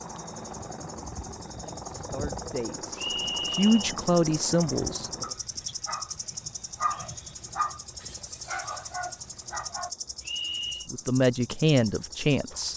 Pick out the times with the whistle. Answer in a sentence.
You can hear the whistle from 3.0 to 3.7 s and from 10.2 to 10.9 s.